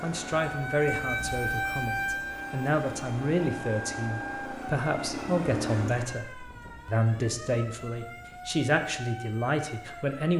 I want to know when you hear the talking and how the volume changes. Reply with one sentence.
The talking can be heard from 0.0 to 10.3 s, at a steady volume.